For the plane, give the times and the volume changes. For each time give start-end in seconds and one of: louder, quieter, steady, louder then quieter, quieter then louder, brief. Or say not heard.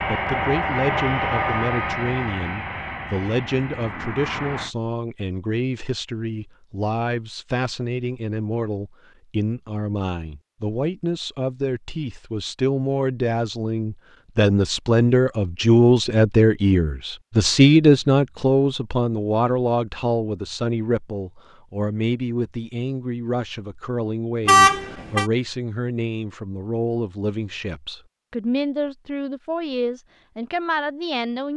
0.0-4.7 quieter.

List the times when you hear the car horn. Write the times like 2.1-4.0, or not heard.
24.4-25.2.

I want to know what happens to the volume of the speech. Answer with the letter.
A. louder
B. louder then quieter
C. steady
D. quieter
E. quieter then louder
B.